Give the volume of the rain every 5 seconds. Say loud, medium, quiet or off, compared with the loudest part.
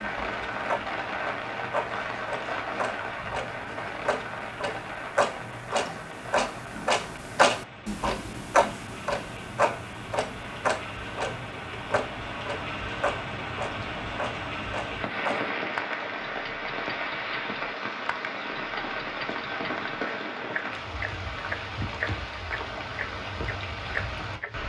loud, medium, loud, loud, loud.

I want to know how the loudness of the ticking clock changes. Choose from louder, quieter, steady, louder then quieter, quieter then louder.
louder then quieter.